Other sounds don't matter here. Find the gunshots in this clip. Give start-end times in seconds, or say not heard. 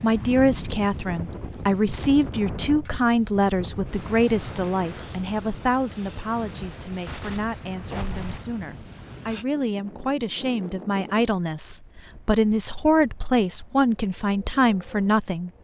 6.8-8.4.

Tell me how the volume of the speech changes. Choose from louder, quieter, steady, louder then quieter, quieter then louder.
quieter then louder.